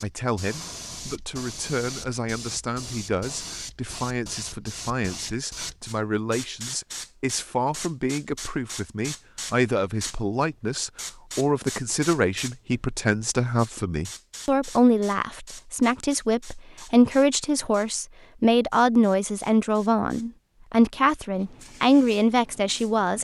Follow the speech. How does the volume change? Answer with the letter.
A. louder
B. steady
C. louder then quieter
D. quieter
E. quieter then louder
A.